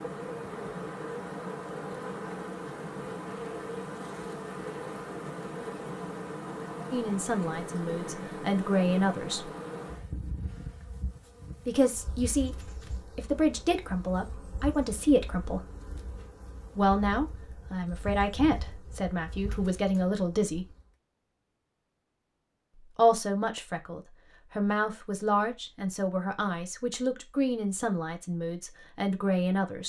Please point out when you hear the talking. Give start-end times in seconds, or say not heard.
6.9-9.5, 11.7-12.6, 13.2-15.6, 16.8-20.6, 22.9-29.8.